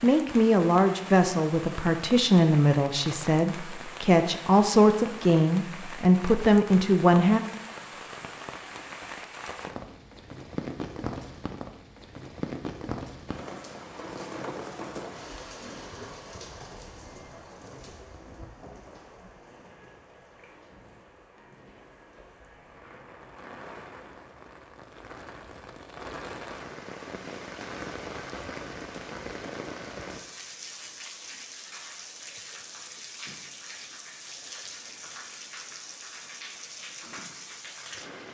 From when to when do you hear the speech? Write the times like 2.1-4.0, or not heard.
0.0-7.4.